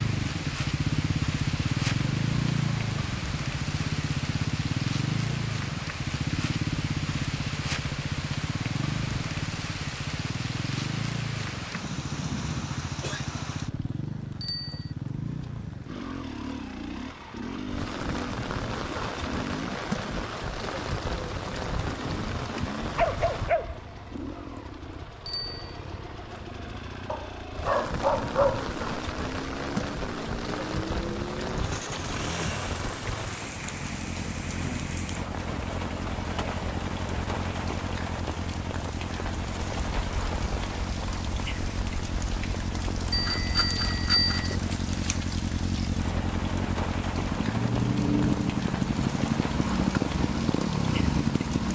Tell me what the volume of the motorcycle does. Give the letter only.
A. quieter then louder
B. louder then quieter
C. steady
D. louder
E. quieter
A.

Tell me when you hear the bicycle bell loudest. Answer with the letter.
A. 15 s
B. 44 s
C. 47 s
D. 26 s
B.